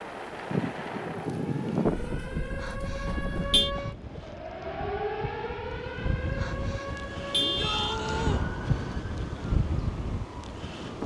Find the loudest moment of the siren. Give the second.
5 s.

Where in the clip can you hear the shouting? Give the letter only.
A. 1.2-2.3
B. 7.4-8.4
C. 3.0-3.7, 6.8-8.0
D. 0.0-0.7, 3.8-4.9
B.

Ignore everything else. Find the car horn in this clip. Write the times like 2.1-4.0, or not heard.
3.0-3.7, 6.8-8.0.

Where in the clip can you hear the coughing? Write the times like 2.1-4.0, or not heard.
not heard.